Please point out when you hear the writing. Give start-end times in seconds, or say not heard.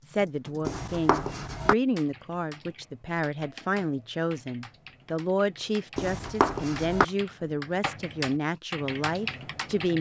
0.7-1.8, 6.0-7.0.